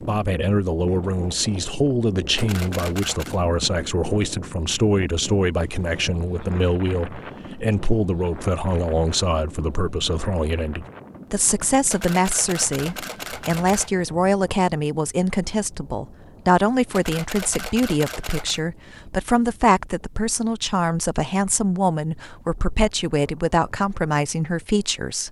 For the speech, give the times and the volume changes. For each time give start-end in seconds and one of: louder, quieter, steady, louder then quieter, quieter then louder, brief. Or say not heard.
0.0-25.2 steady.